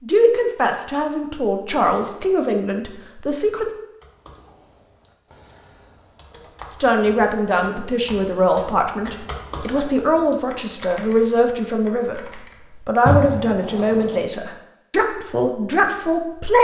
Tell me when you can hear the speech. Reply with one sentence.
You can hear the speech from 0.0 to 3.6 s and from 6.8 to 16.6 s.